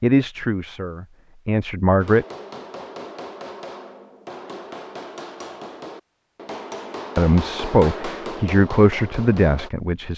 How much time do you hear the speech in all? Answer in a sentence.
The speech can be heard for 5 seconds in total.